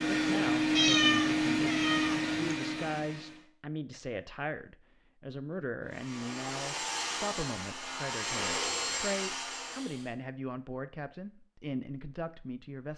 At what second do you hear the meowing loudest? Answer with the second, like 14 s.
1 s.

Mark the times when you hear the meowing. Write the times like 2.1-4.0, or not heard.
0.8-2.5.